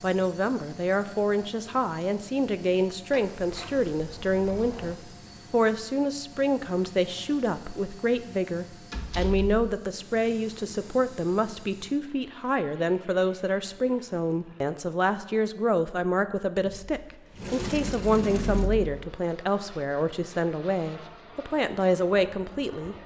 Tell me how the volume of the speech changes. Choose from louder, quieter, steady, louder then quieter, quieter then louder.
steady.